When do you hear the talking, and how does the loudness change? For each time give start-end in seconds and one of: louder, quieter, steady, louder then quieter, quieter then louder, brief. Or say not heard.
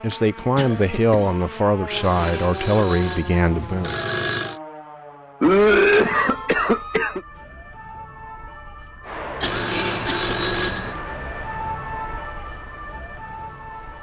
0.0-4.0 steady.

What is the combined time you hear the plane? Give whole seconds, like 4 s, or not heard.
5 s.